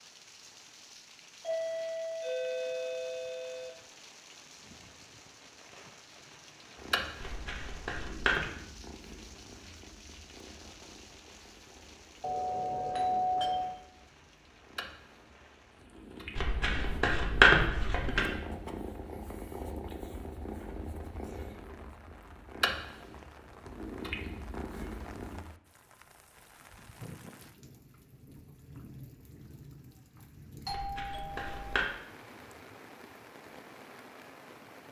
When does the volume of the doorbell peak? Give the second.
13 s.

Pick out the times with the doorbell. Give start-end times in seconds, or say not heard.
1.4-3.7, 12.2-13.8, 30.6-31.8.